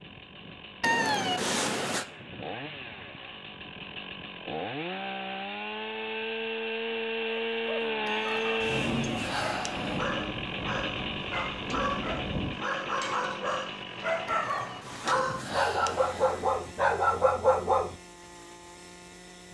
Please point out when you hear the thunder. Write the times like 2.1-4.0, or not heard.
8.6-12.6.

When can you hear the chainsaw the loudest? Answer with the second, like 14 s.
8 s.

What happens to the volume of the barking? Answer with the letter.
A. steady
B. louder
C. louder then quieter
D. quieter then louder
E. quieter
B.